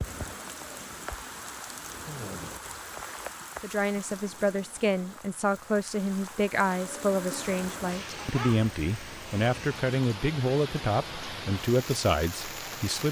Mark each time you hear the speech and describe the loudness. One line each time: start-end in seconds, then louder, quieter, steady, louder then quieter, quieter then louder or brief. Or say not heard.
3.6-13.0 steady.